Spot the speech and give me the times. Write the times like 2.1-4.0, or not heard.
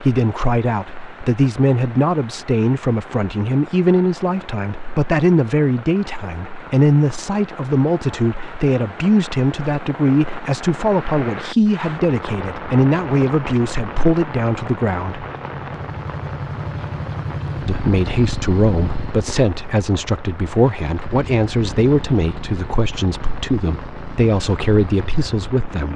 0.0-15.2, 17.6-25.9.